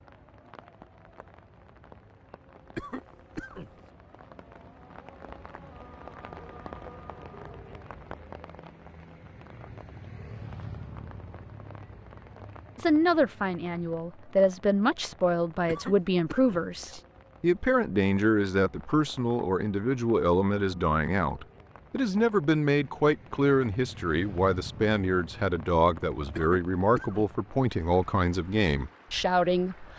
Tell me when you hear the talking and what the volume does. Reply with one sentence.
The talking can be heard from 12.8 to 29.9 s, at a steady volume.